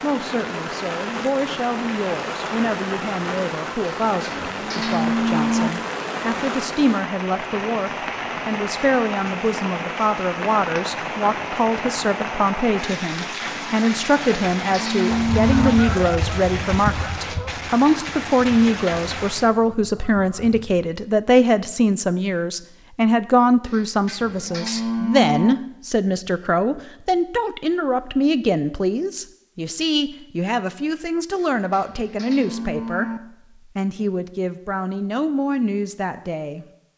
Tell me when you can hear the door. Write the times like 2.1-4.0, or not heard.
not heard.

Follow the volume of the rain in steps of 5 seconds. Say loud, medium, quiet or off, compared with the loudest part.
loud, loud, loud, loud, off, off, off, off.